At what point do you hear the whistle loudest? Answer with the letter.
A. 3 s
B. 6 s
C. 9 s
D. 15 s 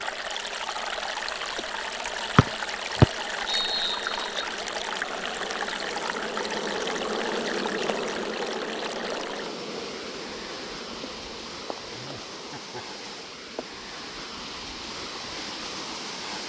A.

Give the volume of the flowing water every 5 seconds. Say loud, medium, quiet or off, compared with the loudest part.
loud, loud, medium, loud.